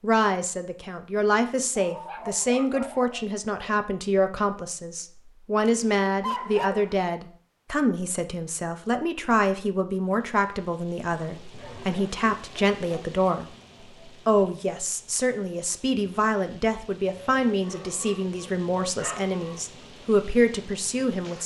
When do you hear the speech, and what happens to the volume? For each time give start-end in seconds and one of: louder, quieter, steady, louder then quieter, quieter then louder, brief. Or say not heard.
0.0-21.4 steady.